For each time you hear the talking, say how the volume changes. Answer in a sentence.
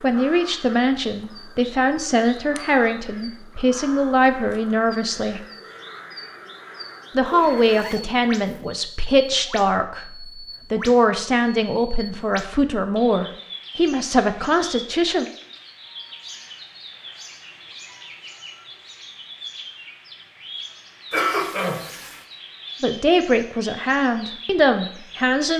You can hear the talking from 0.0 to 5.4 s, at a steady volume; from 7.2 to 15.2 s, at a steady volume; and briefly from 22.8 to 25.5 s.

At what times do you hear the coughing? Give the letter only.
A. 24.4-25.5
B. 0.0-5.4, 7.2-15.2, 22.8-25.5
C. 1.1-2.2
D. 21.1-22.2
D.